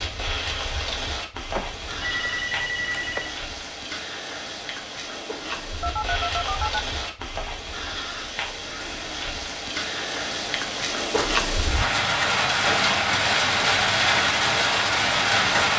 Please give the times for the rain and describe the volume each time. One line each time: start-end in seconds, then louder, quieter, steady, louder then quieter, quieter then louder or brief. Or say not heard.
0.0-15.7 louder.